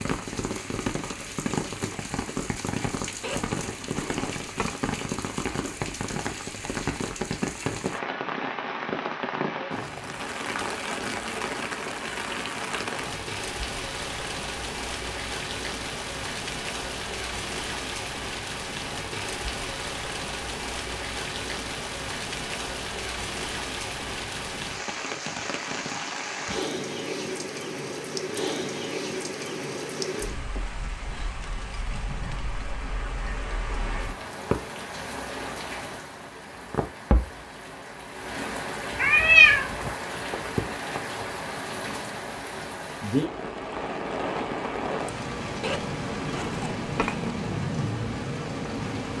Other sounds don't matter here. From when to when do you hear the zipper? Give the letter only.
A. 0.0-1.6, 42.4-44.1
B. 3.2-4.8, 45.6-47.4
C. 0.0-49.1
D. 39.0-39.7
B.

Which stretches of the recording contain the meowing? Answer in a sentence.
The meowing can be heard from 39.0 to 39.7 s.